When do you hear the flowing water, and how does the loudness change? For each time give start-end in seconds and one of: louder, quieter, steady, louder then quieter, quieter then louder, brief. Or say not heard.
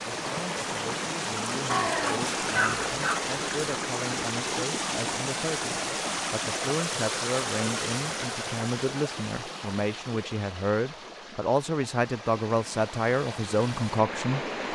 0.0-14.6 quieter.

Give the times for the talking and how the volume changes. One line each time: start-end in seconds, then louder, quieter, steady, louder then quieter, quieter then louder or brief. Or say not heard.
0.2-14.4 louder.